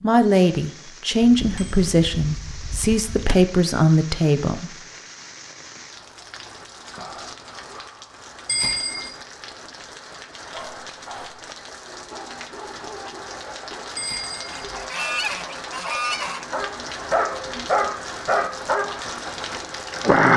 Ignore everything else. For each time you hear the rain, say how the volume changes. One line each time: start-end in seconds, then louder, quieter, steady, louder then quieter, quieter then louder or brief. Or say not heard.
0.2-20.3 louder.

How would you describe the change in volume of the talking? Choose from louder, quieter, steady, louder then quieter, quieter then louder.
steady.